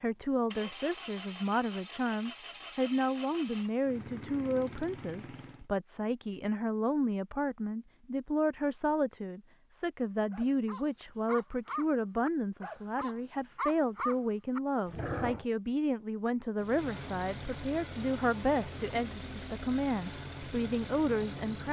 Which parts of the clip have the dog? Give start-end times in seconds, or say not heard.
10.3-15.4.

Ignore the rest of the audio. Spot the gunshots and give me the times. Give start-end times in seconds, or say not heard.
not heard.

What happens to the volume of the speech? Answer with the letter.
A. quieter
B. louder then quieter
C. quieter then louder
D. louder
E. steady
E.